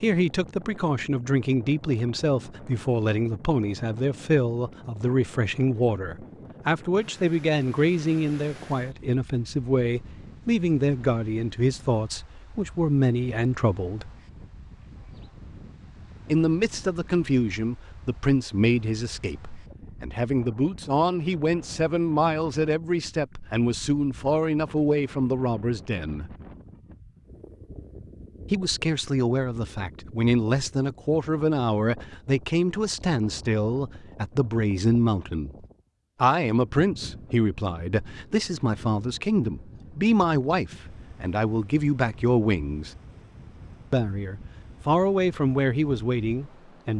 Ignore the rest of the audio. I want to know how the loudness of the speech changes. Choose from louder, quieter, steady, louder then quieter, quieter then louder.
steady.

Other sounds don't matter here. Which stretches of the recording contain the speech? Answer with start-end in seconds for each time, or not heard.
0.0-14.1, 16.2-26.4, 28.5-42.9, 43.9-46.9.